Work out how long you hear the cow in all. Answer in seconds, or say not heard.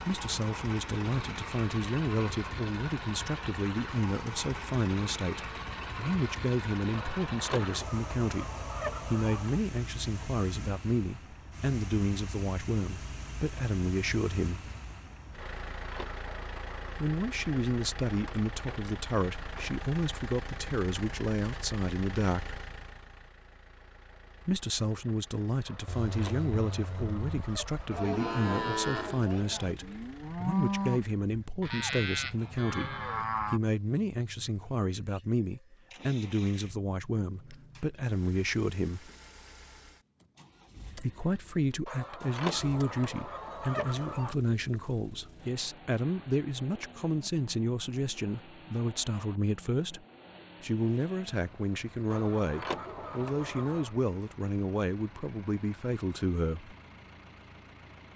8 s.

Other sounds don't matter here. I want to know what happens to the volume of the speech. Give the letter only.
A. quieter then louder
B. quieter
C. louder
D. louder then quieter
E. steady
E.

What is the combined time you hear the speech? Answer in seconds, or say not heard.
51 s.